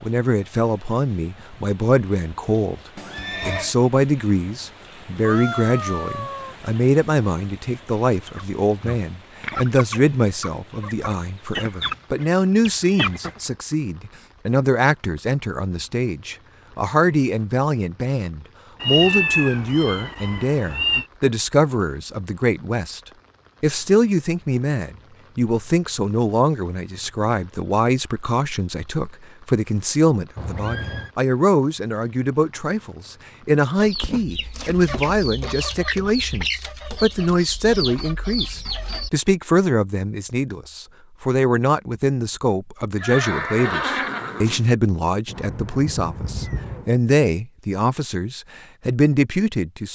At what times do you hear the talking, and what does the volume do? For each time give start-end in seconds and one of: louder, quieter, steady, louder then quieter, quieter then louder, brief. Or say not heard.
0.0-2.8 brief
3.5-23.0 steady
23.6-49.9 steady.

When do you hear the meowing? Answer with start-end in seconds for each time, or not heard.
5.2-6.5, 18.8-21.1, 45.2-46.9.